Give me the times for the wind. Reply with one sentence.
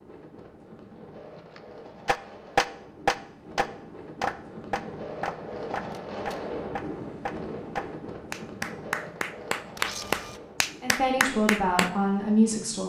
The wind can be heard from 0.0 to 12.8 s.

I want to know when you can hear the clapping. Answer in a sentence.
You can hear the clapping from 2.0 to 11.9 s.